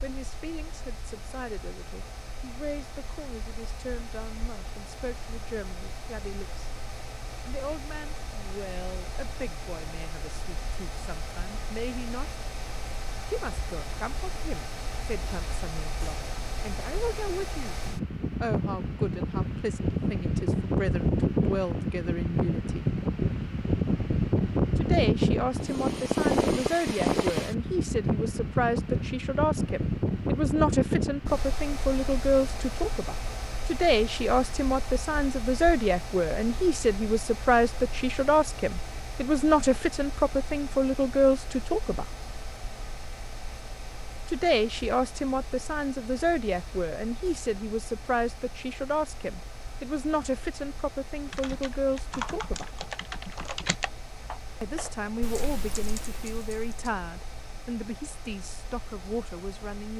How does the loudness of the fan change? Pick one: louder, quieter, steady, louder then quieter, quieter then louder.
louder then quieter.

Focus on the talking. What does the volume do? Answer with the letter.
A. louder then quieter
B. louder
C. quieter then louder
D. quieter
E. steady
A.